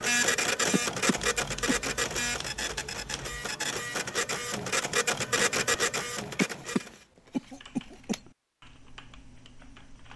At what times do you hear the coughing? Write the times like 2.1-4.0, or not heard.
0.7-1.9, 6.4-8.2.